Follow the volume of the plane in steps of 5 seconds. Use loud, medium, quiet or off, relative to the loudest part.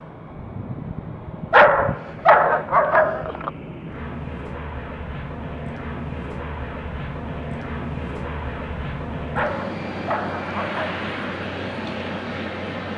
medium, loud, loud.